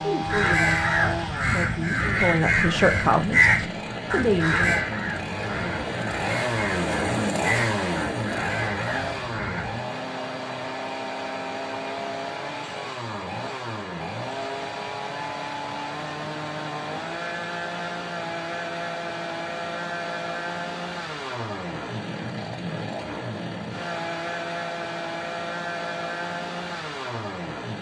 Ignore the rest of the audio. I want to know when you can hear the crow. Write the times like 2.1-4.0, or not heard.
0.2-9.8.